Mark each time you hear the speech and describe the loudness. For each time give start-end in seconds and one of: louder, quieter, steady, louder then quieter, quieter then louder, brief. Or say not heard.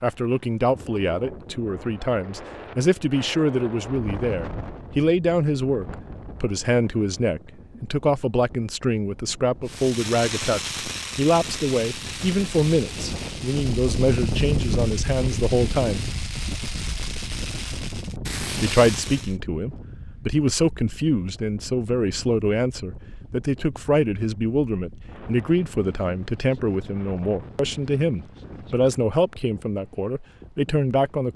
0.0-16.1 steady
18.6-31.3 steady.